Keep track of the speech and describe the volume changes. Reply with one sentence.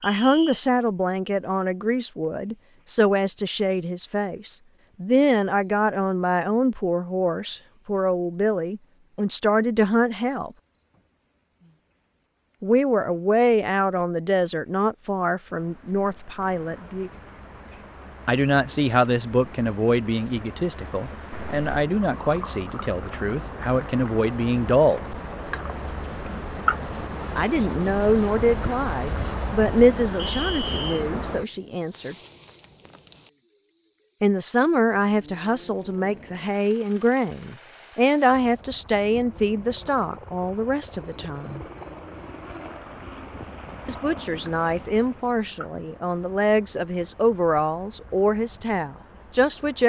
The volume of the speech stays about the same.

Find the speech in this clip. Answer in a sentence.
The speech can be heard from 0.0 to 10.5 s, from 12.6 to 17.1 s, from 18.2 to 25.0 s, from 27.4 to 32.1 s, from 34.2 to 41.6 s and from 43.9 to 49.8 s.